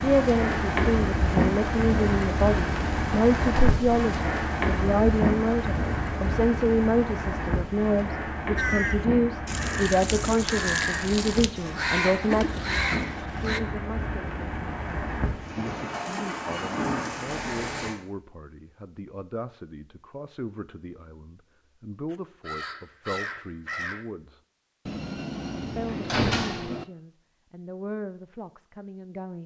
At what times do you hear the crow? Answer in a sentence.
You can hear the crow from 8.6 to 13.6 s and from 22.1 to 24.1 s.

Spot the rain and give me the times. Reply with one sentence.
You can hear the rain from 0.0 to 17.9 s.